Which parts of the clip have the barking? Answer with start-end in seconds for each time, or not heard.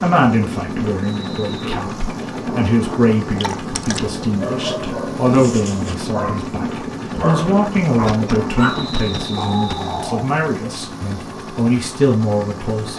3.4-10.3.